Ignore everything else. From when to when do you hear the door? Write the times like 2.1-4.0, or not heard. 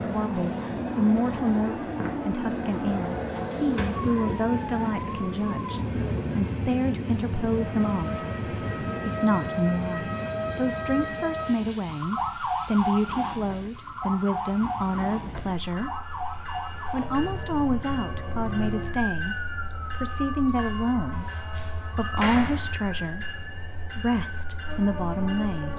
2.9-3.9, 21.2-22.8.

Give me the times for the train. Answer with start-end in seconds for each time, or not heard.
0.0-25.7.